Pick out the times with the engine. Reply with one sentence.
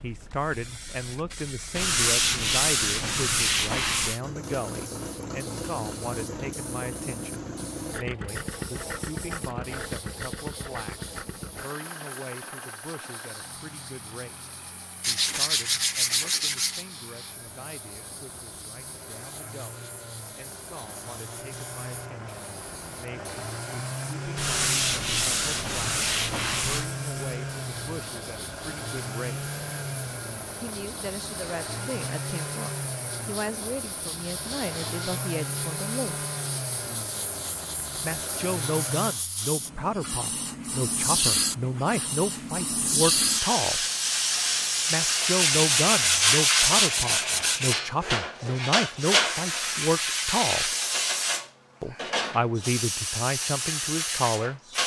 You can hear the engine from 4.2 to 39.2 s.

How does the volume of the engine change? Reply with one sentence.
The volume of the engine goes down, then up.